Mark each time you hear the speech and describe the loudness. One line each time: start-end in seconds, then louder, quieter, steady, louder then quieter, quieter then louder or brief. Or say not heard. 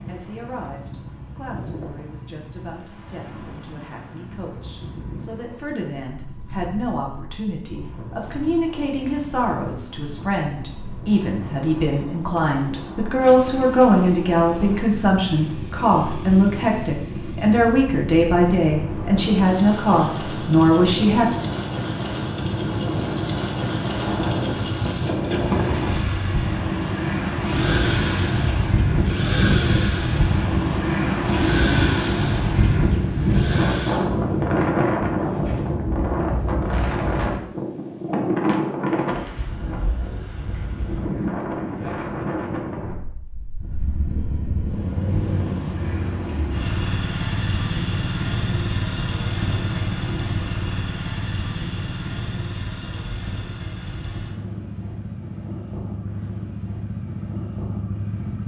0.0-21.3 louder.